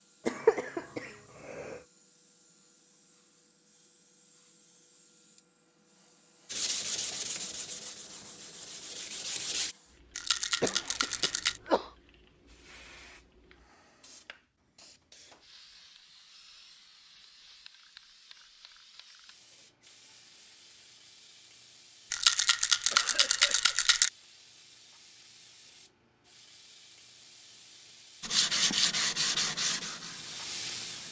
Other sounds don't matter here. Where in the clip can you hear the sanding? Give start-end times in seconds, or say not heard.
6.5-9.8, 28.2-31.0.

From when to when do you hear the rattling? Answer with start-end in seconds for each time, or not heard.
10.2-11.6, 22.1-24.1.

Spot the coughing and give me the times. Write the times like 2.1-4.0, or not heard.
0.2-1.8, 10.6-11.9, 22.9-23.8.